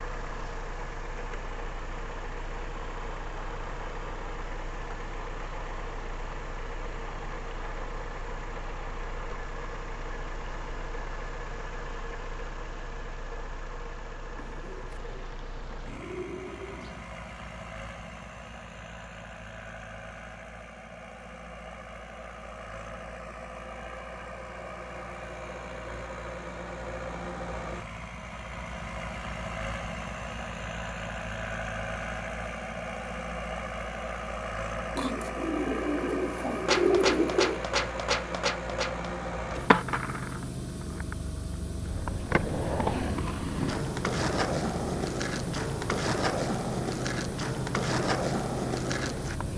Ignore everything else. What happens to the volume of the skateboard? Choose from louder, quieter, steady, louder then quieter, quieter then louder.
steady.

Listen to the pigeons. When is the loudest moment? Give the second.
37 s.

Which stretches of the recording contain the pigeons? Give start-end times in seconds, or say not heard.
14.3-17.1, 35.0-37.6.